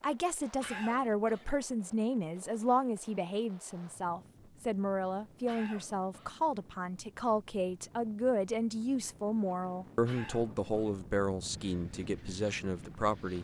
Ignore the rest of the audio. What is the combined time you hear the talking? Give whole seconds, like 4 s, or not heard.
13 s.